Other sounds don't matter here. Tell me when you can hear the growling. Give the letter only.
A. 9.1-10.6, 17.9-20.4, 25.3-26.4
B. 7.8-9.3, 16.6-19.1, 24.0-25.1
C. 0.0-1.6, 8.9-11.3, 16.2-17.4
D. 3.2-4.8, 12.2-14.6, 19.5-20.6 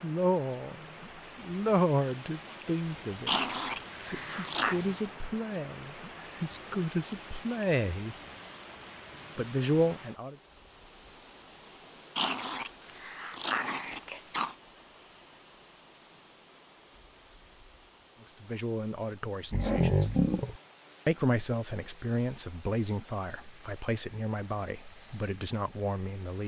D.